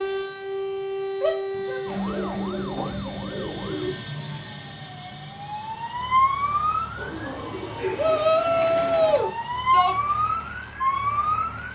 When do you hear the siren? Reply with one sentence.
The siren can be heard from 0.0 to 11.7 s.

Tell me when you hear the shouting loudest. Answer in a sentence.
The volume of the shouting peaks at 8 seconds.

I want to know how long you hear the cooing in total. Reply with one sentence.
The cooing can be heard for 4 seconds in total.